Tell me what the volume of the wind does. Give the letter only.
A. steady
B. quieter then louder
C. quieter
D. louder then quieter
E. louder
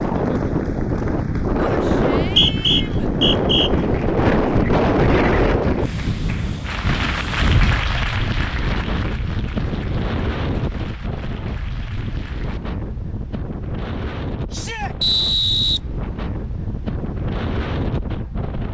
C.